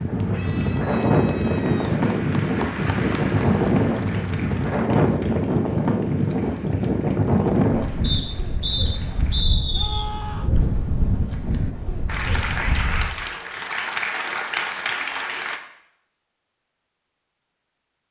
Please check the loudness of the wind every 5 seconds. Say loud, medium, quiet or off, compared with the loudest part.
loud, loud, medium, off.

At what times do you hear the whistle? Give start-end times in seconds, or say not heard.
8.0-10.1.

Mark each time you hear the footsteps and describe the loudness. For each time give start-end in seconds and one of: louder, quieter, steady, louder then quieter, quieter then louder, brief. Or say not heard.
not heard.